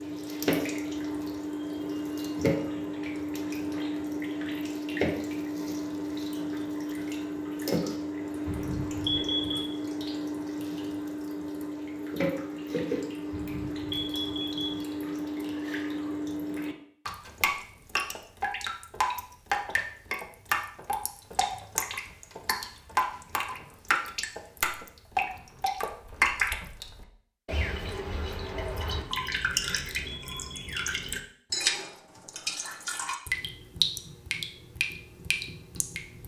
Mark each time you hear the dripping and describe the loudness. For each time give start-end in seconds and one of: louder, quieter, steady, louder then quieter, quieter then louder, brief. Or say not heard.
0.0-36.2 steady.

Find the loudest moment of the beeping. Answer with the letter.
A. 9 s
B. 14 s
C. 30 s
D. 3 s
A.